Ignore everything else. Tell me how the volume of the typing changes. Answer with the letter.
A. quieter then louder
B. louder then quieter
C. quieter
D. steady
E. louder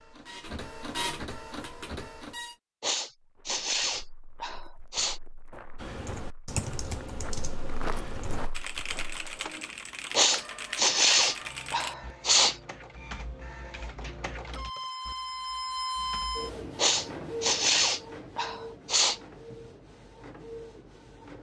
C.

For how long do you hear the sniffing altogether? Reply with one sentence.
The sniffing can be heard for 7 seconds in total.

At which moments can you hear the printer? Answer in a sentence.
The printer can be heard from 0.0 to 2.5 s and from 9.0 to 21.3 s.